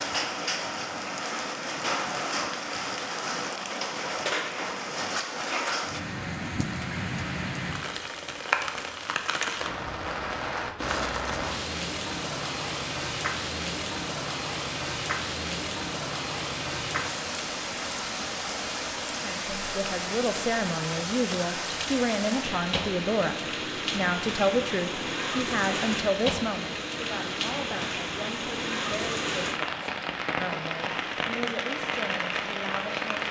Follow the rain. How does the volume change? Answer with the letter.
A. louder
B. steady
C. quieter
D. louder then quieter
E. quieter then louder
B.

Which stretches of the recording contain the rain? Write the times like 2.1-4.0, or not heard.
0.0-33.2.